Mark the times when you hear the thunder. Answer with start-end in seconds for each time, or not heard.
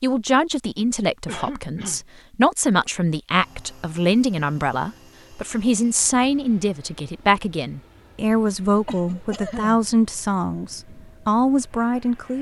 not heard.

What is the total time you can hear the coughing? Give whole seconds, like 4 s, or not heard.
2 s.